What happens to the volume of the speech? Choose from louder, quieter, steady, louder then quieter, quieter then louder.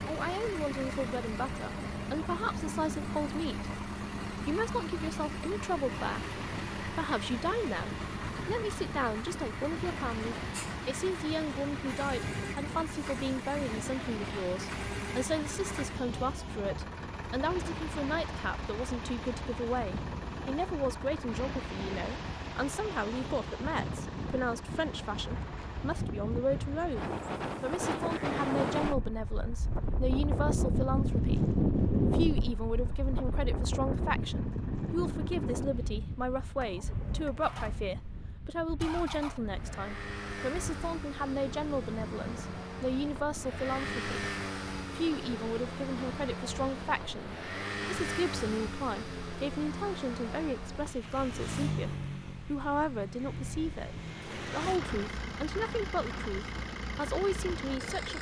steady.